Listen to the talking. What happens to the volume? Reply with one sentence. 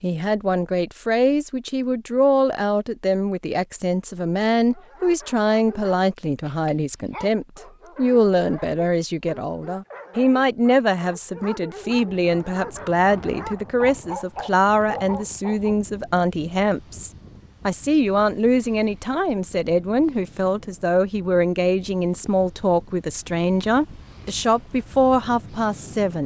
The loudness of the talking stays about the same.